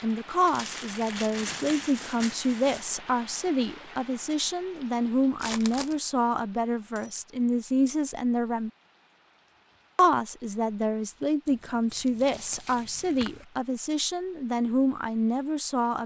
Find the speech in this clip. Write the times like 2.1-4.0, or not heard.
0.0-8.7, 9.9-16.0.